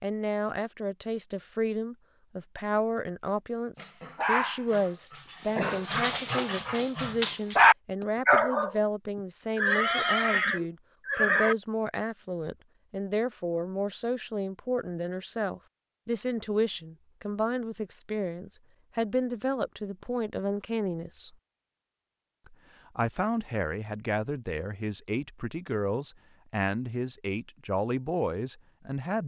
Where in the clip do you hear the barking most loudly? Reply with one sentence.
The loudest moment of the barking is at 8 seconds.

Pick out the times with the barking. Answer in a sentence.
You can hear the barking from 3.8 to 8.8 s.